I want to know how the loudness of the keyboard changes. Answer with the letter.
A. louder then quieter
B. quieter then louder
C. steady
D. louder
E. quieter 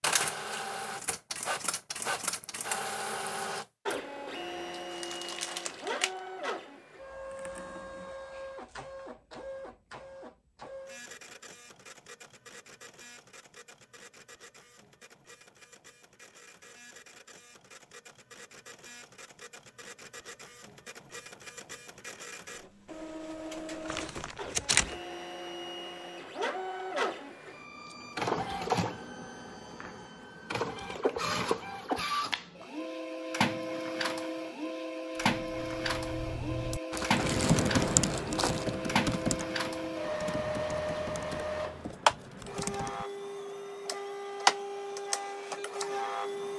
A.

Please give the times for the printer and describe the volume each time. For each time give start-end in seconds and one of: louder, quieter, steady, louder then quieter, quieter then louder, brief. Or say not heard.
0.0-46.5 quieter then louder.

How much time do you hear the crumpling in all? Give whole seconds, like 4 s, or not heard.
5 s.